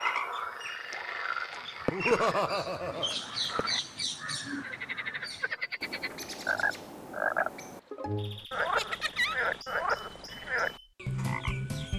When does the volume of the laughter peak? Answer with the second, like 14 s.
2 s.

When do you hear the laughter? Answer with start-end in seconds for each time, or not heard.
1.9-3.1, 8.8-9.3.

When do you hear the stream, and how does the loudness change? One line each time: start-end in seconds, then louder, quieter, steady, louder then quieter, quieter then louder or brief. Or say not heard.
not heard.